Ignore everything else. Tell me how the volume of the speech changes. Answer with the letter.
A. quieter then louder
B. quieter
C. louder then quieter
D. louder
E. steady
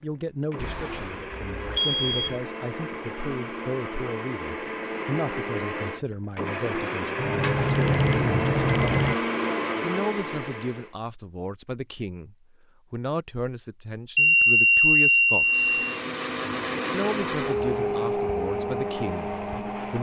E.